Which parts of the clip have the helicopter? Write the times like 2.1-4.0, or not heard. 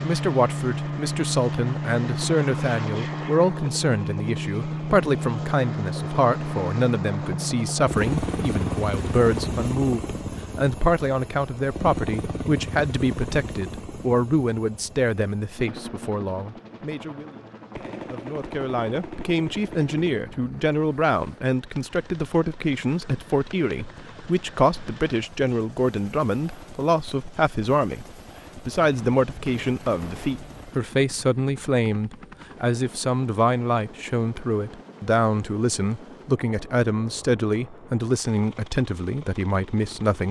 0.0-40.2.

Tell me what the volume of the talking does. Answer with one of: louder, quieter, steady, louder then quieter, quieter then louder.
steady.